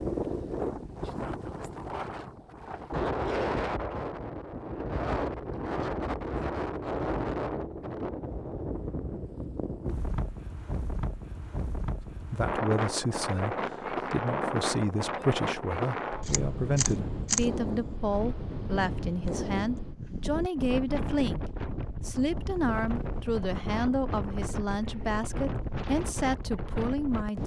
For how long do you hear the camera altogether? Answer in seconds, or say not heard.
2 s.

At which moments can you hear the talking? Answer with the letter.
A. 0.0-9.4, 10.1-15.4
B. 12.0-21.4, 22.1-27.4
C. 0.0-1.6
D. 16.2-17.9
B.